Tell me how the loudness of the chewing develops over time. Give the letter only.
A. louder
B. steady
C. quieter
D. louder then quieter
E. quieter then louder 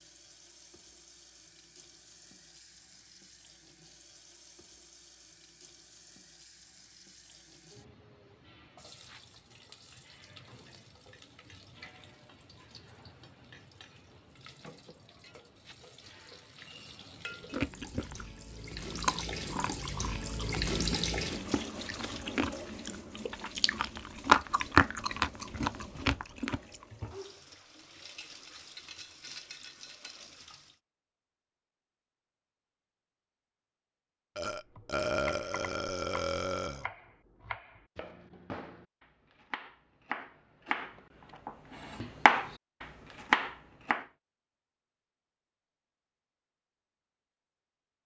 E.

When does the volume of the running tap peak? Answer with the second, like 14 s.
21 s.